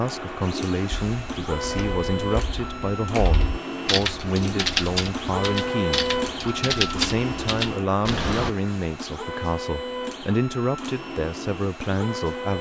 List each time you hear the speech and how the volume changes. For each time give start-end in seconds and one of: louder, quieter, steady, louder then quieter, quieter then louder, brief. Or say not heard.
0.0-12.5 steady.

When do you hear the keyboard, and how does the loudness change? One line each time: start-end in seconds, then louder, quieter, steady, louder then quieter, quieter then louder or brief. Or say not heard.
1.1-8.5 louder.